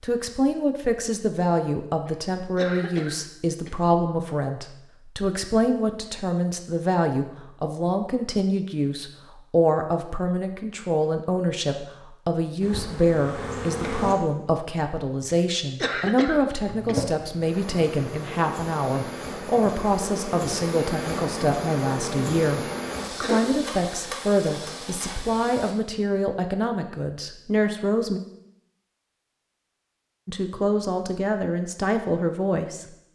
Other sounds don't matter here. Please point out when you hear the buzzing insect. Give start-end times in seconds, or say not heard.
12.6-14.2, 16.6-25.8.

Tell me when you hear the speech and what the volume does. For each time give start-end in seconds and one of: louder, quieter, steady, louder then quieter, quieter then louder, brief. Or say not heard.
0.0-28.2 steady
30.2-32.9 brief.